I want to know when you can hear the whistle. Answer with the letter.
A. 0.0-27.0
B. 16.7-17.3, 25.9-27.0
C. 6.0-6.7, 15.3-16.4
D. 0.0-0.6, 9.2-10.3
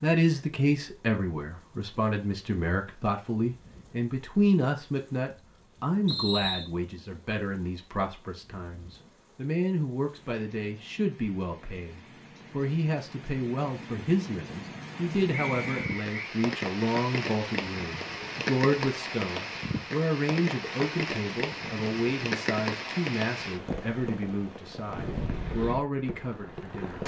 C.